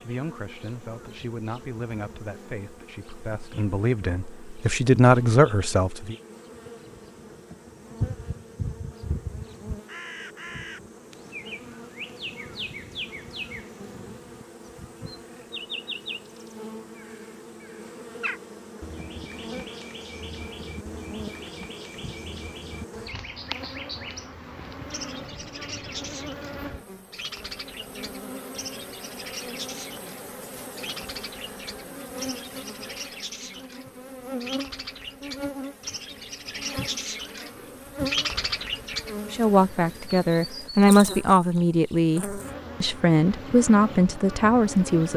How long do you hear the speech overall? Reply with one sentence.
You can hear the speech for 12 seconds altogether.